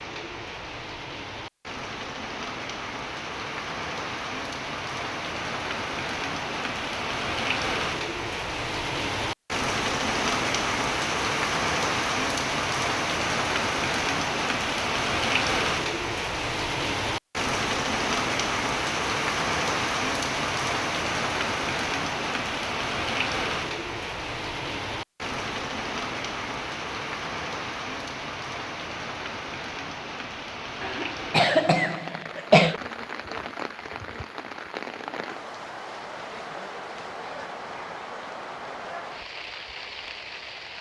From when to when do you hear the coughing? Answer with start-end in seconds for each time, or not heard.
30.8-32.8.